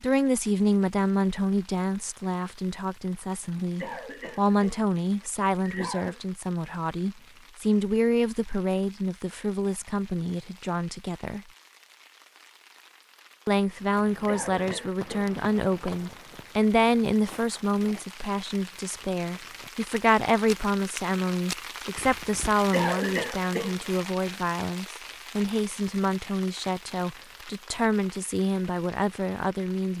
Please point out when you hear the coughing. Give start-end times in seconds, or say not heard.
3.8-4.8, 5.6-6.2, 14.2-15.3, 22.7-23.8.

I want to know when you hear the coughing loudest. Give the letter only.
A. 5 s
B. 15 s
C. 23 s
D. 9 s
C.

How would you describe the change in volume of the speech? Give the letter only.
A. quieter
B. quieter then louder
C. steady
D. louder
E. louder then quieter
C.